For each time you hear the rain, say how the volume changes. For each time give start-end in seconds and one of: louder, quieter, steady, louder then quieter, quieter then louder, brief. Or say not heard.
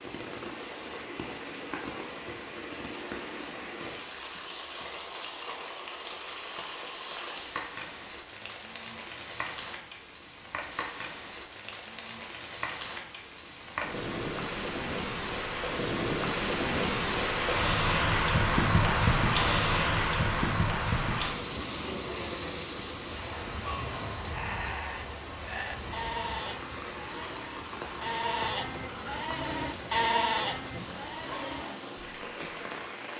0.0-33.1 louder then quieter.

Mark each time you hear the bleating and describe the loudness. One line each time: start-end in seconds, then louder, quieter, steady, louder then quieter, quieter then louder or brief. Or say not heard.
23.6-32.6 louder then quieter.